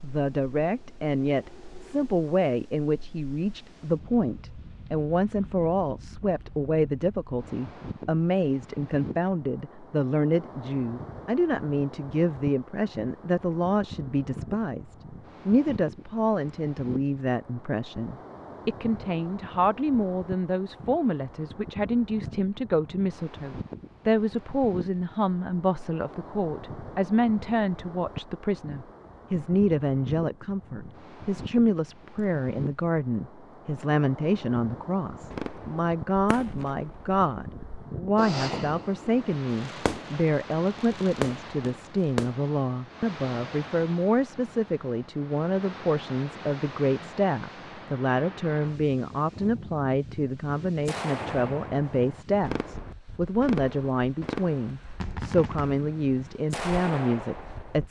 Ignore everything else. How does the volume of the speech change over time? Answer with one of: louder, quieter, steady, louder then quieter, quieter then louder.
steady.